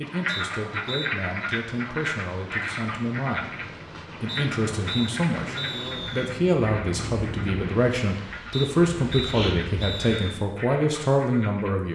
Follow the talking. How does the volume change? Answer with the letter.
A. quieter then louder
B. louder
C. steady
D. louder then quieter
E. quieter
B.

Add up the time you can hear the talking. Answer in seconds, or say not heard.
12 s.